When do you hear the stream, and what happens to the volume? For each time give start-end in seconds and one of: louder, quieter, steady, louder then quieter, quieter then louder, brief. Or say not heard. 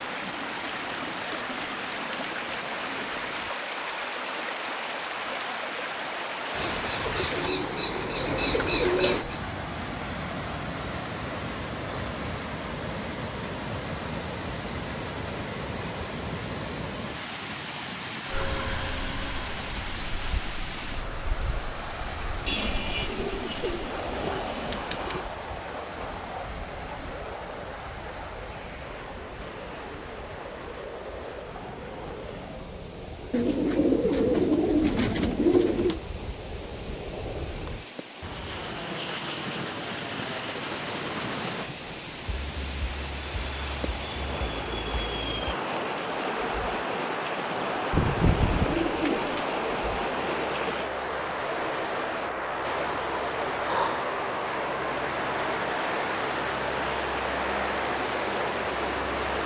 0.0-59.4 quieter then louder.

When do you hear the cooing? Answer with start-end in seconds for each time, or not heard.
6.5-9.4, 22.4-25.2, 33.3-36.0, 47.9-49.5.